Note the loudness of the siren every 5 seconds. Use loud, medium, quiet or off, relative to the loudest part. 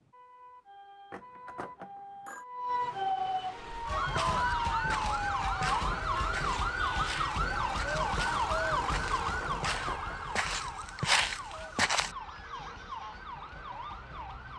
loud, loud, medium.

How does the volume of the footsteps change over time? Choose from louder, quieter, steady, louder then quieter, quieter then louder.
louder.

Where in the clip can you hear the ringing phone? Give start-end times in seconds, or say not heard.
1.1-2.5, 9.4-10.2.